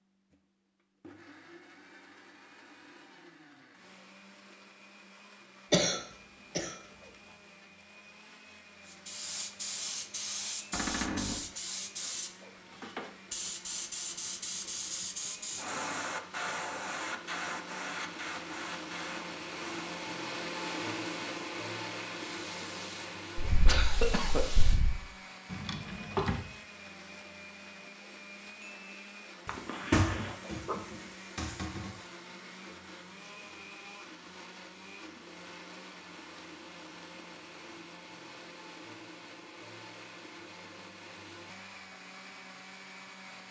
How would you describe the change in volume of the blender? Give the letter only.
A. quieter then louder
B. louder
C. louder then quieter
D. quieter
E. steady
C.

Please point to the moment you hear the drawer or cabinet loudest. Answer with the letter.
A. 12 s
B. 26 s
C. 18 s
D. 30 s
D.